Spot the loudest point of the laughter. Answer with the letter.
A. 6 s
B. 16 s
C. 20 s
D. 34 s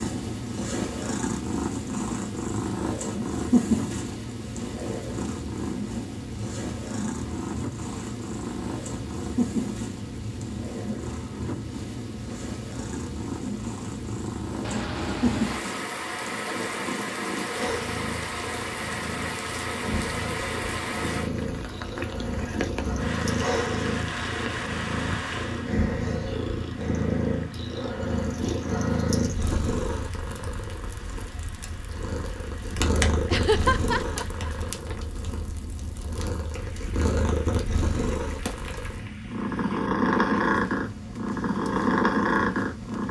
D.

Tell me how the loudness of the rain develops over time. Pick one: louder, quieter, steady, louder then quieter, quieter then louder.
quieter.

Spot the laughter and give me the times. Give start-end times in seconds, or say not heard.
14.6-15.7, 33.3-35.0.